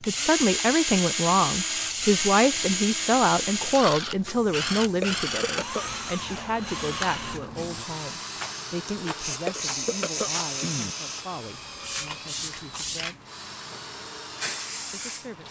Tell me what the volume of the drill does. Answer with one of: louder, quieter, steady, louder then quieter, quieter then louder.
quieter.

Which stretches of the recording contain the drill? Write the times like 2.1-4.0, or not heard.
0.0-15.4.